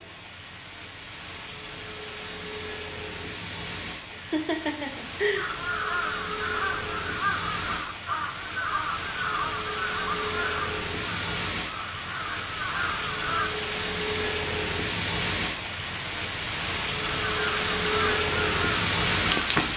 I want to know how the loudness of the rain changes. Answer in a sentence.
The loudness of the rain goes up.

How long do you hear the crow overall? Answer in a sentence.
You can hear the crow for 11 seconds altogether.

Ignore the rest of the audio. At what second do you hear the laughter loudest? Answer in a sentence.
The volume of the laughter peaks at 5 seconds.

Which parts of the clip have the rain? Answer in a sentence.
The rain can be heard from 0.0 to 19.7 s.